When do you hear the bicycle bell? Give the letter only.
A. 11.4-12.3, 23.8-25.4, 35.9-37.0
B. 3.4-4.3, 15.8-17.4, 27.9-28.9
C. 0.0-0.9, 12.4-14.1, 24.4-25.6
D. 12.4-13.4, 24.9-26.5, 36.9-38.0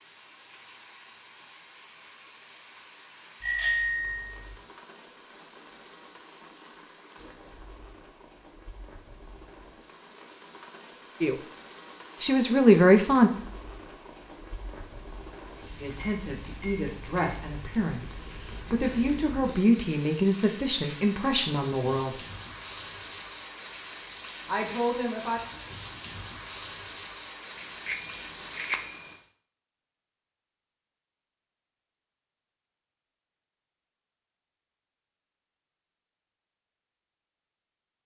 B.